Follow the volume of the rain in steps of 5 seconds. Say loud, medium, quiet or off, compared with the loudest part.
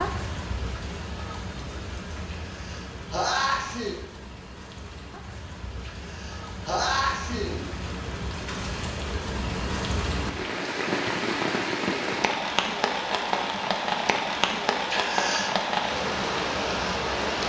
medium, medium, loud, loud.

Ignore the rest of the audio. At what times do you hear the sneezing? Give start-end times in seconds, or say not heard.
2.4-4.0, 5.8-7.8, 14.9-15.6.